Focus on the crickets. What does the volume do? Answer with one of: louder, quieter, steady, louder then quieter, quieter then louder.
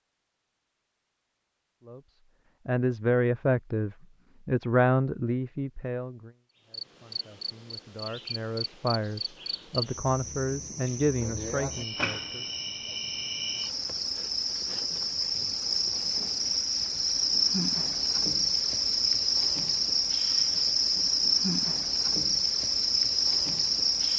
louder.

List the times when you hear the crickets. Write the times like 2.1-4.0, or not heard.
6.7-24.1.